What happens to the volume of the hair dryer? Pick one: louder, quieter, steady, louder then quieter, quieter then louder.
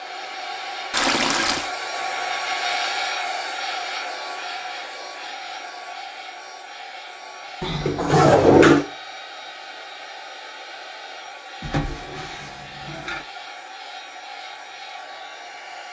quieter.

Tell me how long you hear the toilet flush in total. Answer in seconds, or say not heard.
4 s.